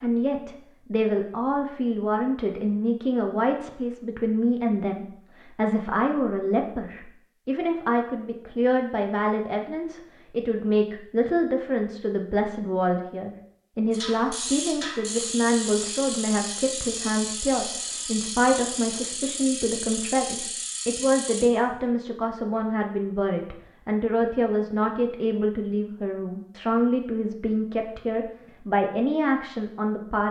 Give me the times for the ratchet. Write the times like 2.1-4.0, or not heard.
13.9-21.5.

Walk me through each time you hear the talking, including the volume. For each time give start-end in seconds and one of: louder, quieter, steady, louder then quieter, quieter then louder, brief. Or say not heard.
0.0-30.2 steady.